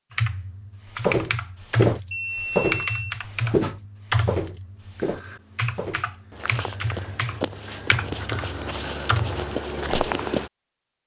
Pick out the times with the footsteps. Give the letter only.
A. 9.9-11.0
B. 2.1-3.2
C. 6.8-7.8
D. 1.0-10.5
D.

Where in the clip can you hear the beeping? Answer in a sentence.
The beeping can be heard from 2.1 to 3.2 s.